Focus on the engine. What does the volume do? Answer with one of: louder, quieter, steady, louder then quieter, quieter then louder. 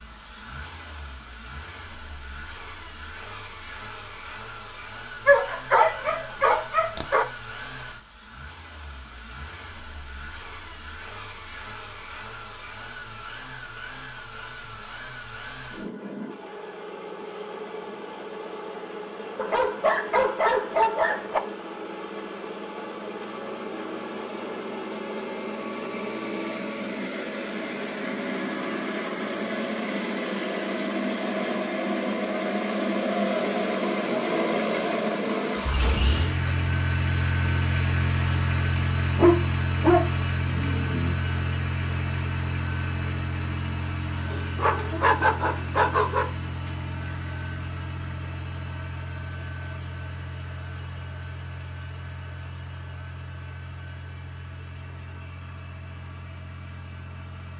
louder then quieter.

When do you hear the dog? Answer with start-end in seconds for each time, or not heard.
5.2-7.2, 19.4-21.4, 39.1-41.1, 44.6-46.2.